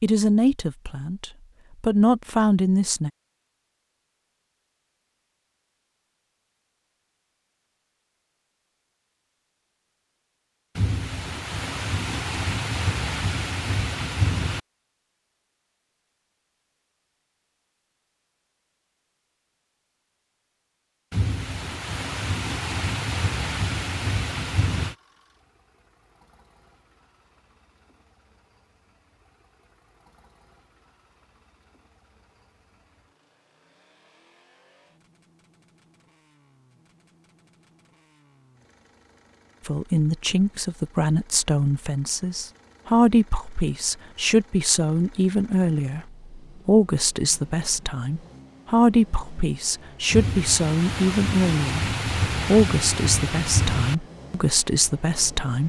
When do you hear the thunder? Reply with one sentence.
You can hear the thunder from 10.8 to 14.6 s, from 21.1 to 24.9 s and from 50.1 to 54.0 s.